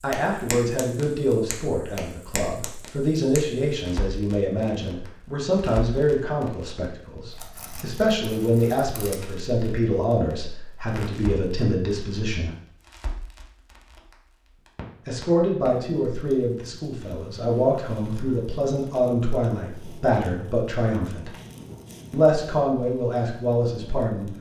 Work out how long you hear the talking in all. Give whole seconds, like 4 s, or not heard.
21 s.